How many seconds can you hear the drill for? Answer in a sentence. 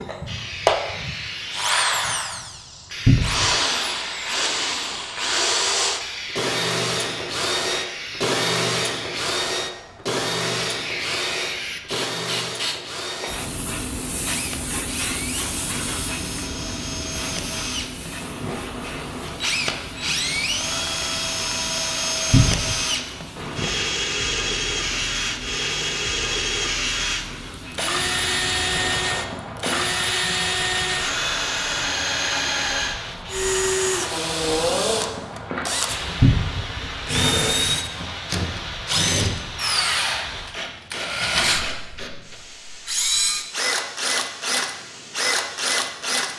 You can hear the drill for 46 seconds altogether.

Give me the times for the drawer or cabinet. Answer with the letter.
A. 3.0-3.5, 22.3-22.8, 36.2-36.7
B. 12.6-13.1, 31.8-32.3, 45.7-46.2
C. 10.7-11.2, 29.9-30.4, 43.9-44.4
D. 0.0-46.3
A.